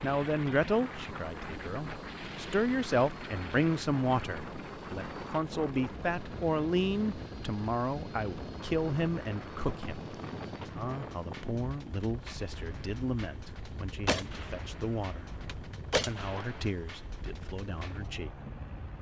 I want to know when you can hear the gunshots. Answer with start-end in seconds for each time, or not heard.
14.1-16.7.